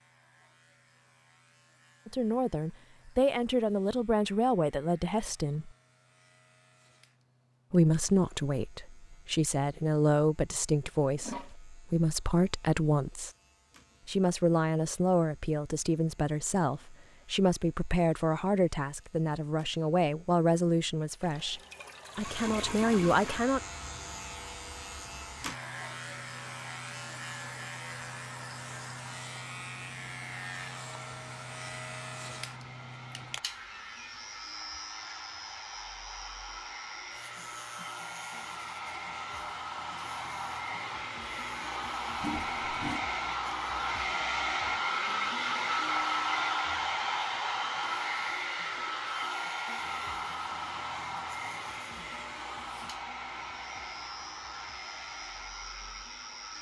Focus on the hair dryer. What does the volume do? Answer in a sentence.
The loudness of the hair dryer goes up, then down.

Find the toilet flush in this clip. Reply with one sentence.
The toilet flush can be heard from 11.2 to 11.6 s, from 21.2 to 23.4 s and from 42.1 to 43.0 s.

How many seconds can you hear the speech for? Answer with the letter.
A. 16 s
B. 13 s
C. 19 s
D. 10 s
C.